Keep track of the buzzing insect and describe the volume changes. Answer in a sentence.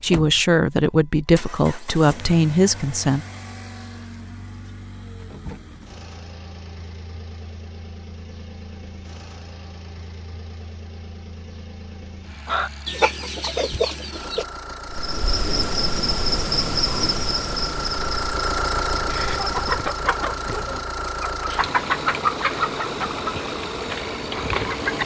The volume of the buzzing insect goes down.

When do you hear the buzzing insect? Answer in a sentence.
You can hear the buzzing insect from 14.8 to 19.9 s.